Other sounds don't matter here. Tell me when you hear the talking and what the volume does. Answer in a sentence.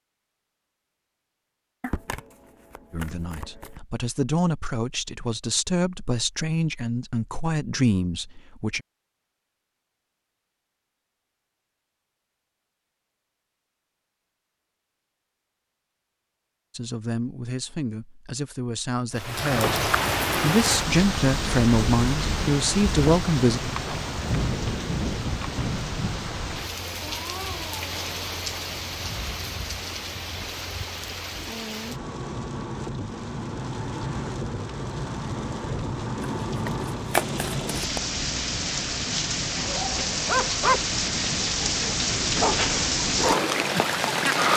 You can hear the talking from 2.9 to 8.8 s, getting louder; and from 16.8 to 23.6 s, getting louder.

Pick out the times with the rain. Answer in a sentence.
You can hear the rain from 19.1 to 44.5 s.